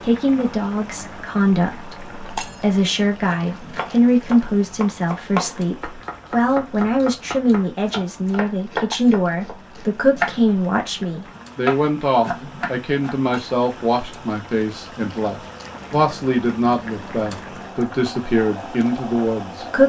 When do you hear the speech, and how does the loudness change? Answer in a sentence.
The speech can be heard from 0.0 to 19.8 s, at a steady volume.